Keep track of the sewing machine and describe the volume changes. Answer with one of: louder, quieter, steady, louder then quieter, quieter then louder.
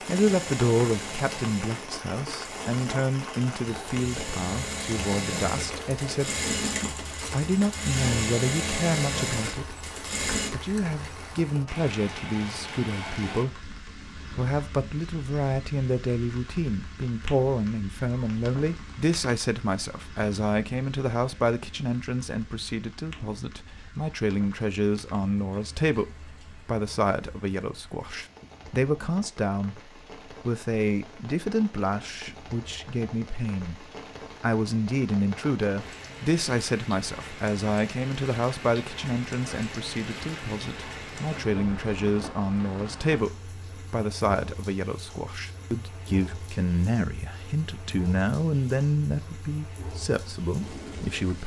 louder.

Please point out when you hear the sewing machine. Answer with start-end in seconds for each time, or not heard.
0.0-10.5.